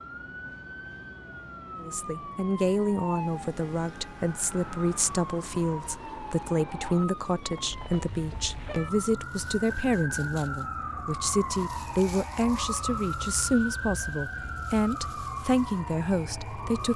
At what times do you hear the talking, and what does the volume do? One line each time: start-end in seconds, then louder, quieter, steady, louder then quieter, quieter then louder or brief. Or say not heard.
1.8-16.9 steady.